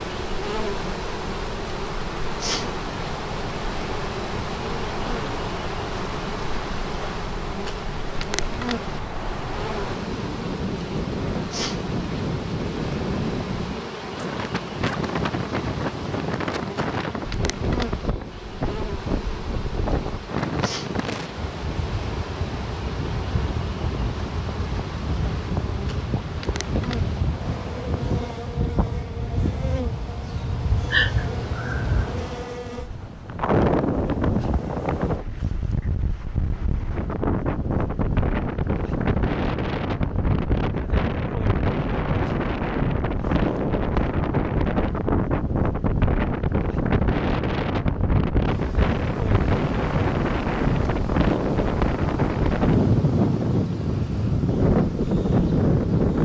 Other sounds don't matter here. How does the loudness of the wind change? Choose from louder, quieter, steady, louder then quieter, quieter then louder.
louder.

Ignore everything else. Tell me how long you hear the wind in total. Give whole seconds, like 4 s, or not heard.
56 s.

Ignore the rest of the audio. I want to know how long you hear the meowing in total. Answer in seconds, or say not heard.
2 s.